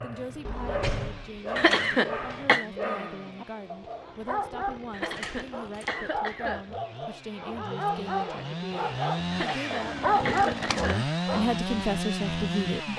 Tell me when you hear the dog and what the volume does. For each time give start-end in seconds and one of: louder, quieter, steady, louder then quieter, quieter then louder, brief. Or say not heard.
0.0-11.4 louder.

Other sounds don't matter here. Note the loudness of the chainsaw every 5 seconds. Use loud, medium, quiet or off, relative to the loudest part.
quiet, medium, loud.